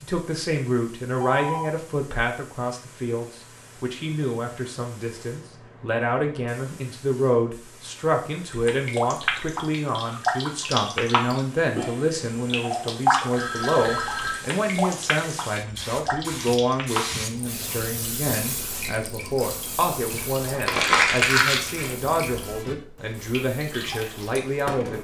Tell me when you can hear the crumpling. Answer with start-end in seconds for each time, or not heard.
20.6-22.1.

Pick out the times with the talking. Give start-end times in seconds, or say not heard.
0.0-24.9.